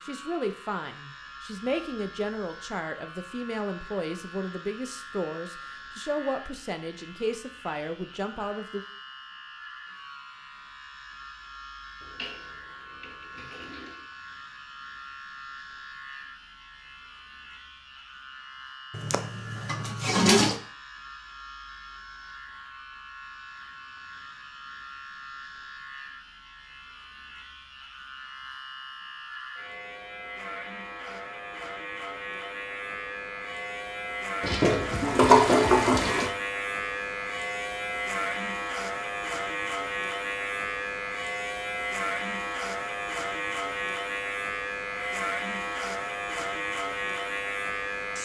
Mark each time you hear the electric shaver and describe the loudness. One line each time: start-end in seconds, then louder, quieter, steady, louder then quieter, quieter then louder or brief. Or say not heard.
0.0-48.2 louder.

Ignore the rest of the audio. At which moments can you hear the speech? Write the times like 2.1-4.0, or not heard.
0.0-8.8.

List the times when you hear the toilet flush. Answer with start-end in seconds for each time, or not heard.
12.0-14.1, 18.9-20.6, 34.4-36.3.